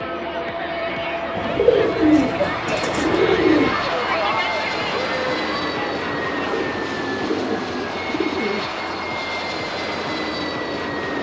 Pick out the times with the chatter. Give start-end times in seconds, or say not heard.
0.0-6.8.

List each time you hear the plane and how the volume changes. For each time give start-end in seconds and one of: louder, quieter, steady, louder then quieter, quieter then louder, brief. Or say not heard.
0.0-11.1 steady.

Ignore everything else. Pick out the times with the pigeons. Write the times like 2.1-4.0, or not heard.
1.4-3.9, 6.5-8.7.